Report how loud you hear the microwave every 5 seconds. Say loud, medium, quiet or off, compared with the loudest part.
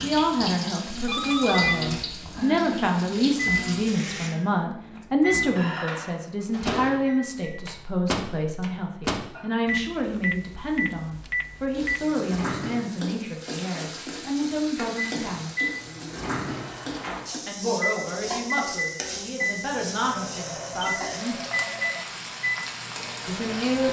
loud, loud, off, loud, medium.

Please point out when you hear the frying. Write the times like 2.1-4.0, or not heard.
0.0-4.3, 11.7-23.8.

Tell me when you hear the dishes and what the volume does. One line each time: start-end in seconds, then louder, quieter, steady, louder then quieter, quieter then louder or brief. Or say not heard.
not heard.